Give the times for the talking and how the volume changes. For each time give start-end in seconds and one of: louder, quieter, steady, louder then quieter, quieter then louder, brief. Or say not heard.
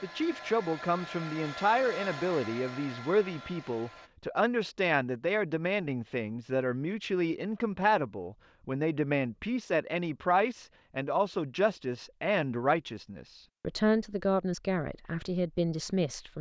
0.0-16.3 steady.